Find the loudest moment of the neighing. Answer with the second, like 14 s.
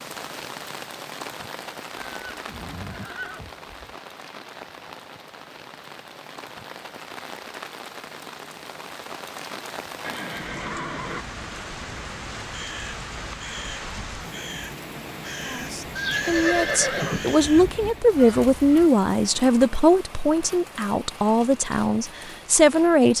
17 s.